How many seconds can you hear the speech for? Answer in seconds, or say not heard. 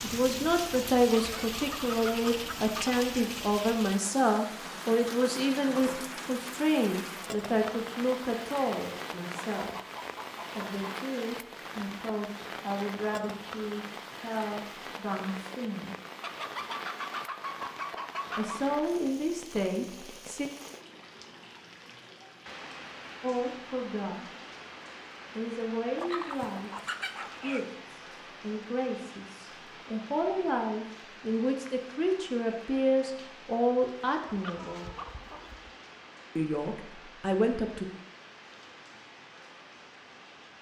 29 s.